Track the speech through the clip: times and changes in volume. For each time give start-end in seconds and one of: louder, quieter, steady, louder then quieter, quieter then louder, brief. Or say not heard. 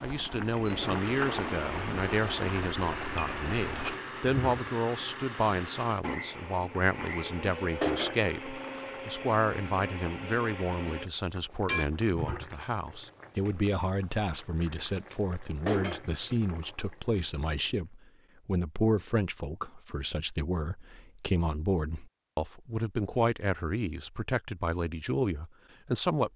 0.0-26.3 steady.